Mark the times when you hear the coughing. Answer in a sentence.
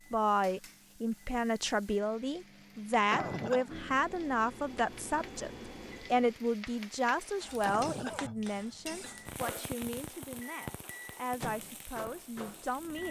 The coughing can be heard from 3.1 to 3.7 s and from 7.7 to 9.1 s.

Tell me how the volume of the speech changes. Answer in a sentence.
The volume of the speech goes down.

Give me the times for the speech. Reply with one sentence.
The speech can be heard from 0.1 to 5.5 s and from 6.1 to 13.0 s.